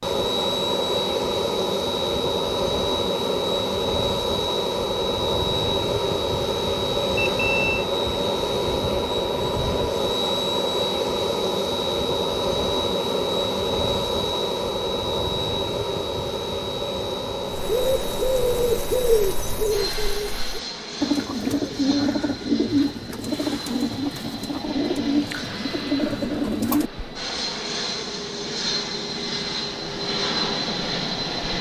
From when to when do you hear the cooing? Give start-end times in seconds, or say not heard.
17.4-26.9.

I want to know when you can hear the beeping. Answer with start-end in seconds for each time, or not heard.
7.2-7.8.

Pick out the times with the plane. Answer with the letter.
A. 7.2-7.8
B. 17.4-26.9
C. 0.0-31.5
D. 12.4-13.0
C.